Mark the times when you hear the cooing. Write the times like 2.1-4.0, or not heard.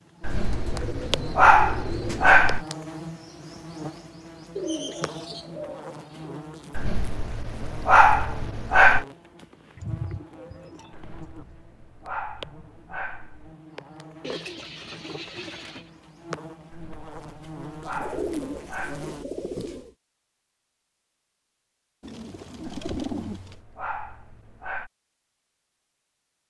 0.2-2.5, 4.5-6.4, 9.8-11.6, 14.2-15.8, 18.0-19.9, 22.0-23.6.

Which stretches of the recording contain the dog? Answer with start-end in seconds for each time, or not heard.
0.2-2.6, 6.8-9.1, 10.9-13.6, 16.7-19.1, 22.6-24.9.